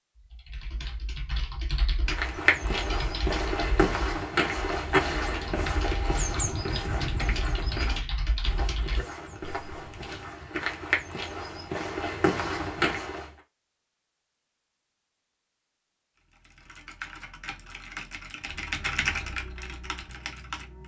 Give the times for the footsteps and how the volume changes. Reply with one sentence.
The footsteps can be heard from 2.1 to 13.3 s, getting quieter then louder.